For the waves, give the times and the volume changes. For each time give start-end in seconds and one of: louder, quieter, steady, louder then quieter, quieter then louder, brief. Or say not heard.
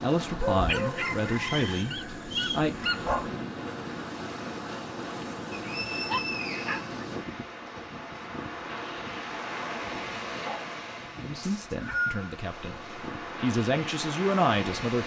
0.0-15.0 steady.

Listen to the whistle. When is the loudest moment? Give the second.
12 s.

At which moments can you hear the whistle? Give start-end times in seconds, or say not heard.
1.4-2.7, 5.5-6.8, 11.4-12.2.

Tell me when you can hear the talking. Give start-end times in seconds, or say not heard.
0.0-2.8, 11.2-15.0.